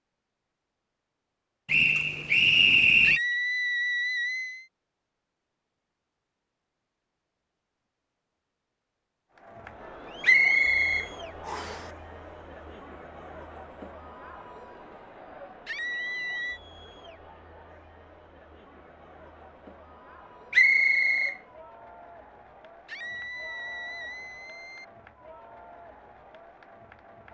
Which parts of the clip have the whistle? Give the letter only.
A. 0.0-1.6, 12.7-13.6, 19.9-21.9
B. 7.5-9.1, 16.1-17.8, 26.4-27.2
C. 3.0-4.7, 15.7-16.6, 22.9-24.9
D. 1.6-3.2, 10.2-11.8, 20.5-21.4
D.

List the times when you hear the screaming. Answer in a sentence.
The screaming can be heard from 3.0 to 4.7 s, from 15.7 to 16.6 s and from 22.9 to 24.9 s.